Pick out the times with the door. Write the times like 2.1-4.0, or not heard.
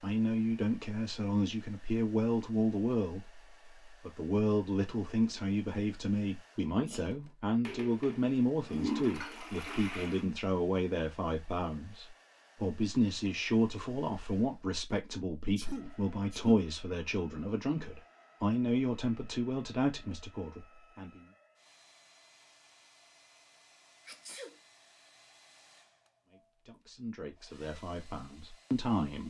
not heard.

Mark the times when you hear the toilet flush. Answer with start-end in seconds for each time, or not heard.
7.7-10.2.